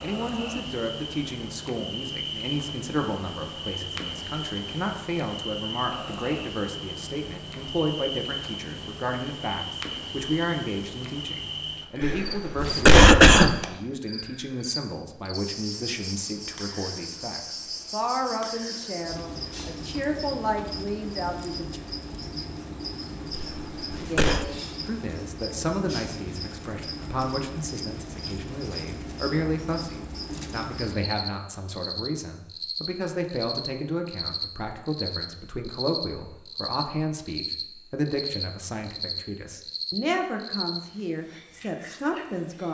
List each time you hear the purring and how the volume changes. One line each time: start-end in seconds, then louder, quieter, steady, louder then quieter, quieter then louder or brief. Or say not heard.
not heard.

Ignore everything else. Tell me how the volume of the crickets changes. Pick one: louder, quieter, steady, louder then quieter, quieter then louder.
steady.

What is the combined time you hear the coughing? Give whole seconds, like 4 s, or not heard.
3 s.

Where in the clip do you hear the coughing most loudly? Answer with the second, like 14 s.
13 s.